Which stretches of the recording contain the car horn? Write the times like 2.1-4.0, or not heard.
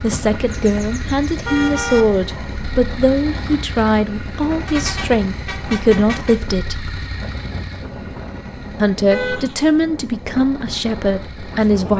0.5-2.0, 4.7-6.4, 9.1-9.7.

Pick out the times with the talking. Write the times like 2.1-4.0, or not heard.
0.0-6.8, 8.8-11.9.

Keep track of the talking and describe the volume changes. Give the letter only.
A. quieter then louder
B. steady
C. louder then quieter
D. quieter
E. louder
B.